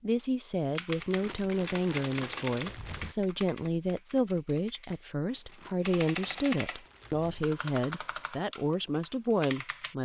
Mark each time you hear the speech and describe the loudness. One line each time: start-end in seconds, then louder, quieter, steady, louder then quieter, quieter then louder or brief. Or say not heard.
0.0-10.0 steady.